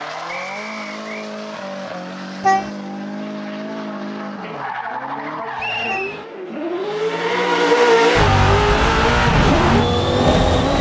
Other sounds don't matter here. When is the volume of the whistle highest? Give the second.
6 s.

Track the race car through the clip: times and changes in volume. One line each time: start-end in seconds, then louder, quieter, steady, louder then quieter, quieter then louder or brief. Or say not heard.
0.0-10.7 louder.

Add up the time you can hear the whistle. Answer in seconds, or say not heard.
2 s.